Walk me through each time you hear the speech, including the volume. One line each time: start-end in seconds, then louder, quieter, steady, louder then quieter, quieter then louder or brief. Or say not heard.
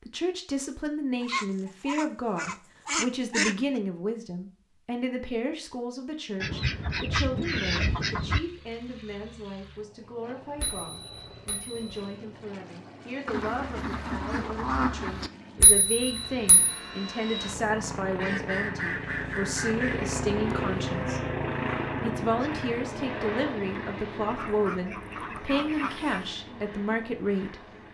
0.0-21.2 quieter then louder
22.0-27.9 steady.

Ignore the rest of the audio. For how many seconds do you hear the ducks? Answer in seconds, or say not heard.
10 s.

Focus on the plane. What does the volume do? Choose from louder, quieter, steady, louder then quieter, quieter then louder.
louder then quieter.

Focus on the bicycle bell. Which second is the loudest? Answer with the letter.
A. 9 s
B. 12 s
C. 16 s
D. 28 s
C.